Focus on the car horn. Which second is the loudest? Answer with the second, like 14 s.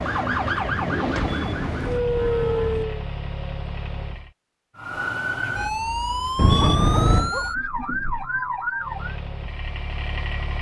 7 s.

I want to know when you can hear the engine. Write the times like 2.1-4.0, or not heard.
0.0-4.3, 8.8-10.5.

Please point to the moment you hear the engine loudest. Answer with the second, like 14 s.
1 s.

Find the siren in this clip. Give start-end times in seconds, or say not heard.
0.0-3.0, 4.8-9.2.